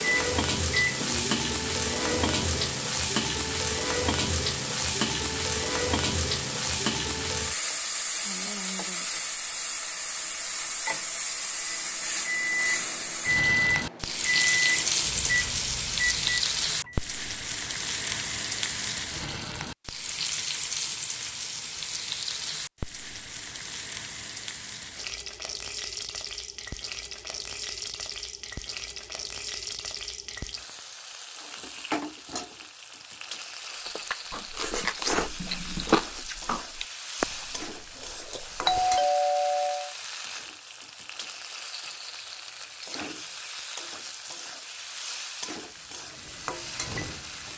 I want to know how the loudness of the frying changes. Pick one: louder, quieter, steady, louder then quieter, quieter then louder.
quieter.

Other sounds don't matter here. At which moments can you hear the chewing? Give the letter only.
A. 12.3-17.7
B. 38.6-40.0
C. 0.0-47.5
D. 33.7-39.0
D.